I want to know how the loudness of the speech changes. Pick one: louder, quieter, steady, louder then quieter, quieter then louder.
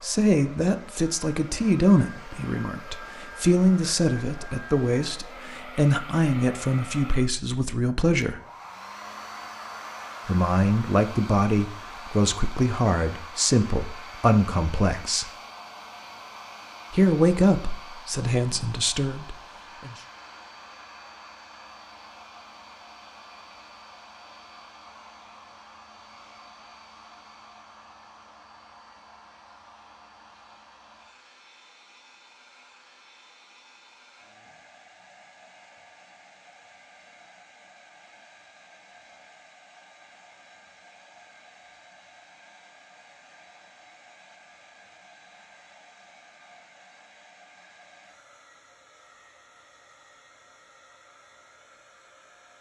steady.